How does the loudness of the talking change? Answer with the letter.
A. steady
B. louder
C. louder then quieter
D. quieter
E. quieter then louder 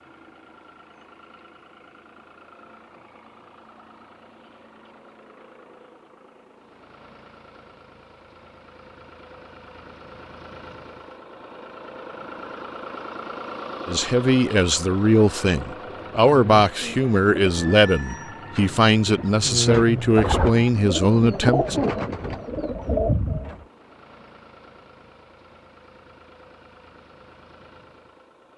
A.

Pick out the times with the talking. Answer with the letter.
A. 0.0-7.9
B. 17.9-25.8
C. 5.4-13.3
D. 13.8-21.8
D.